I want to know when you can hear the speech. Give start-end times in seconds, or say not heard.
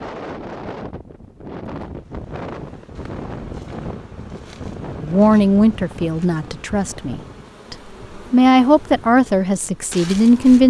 5.0-10.6.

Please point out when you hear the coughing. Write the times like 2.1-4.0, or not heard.
not heard.